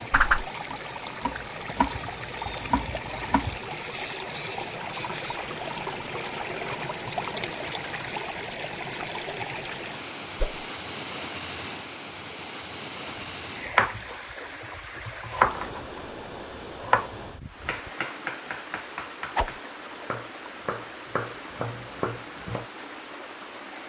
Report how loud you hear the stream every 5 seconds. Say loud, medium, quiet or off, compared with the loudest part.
loud, loud, loud, medium, medium.